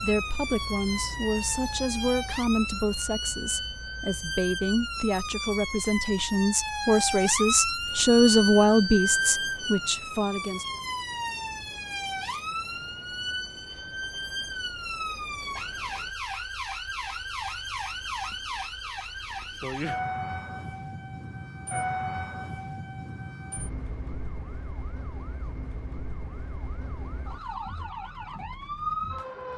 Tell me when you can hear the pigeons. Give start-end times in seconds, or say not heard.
not heard.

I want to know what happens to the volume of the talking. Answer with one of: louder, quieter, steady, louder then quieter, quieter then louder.
louder.